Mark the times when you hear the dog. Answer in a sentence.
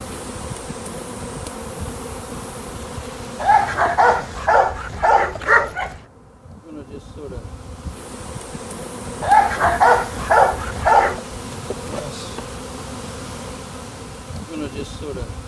You can hear the dog from 3.4 to 6.0 s and from 9.2 to 11.2 s.